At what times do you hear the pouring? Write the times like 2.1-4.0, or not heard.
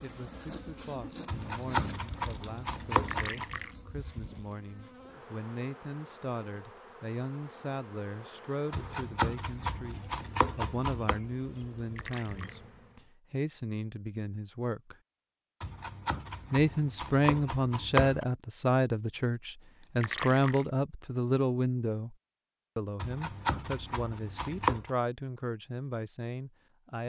2.9-3.8, 11.8-12.6, 19.8-20.7.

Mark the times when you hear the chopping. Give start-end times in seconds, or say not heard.
1.2-3.5, 8.7-11.2, 15.6-18.2, 22.9-24.9.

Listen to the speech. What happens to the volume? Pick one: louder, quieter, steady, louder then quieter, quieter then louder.
louder then quieter.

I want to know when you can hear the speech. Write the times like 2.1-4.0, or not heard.
0.0-14.9, 16.5-22.1, 22.8-27.0.